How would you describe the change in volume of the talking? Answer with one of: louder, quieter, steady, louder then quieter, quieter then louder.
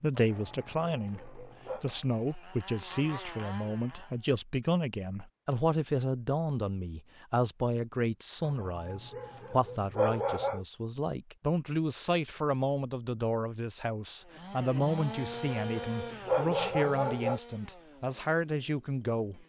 steady.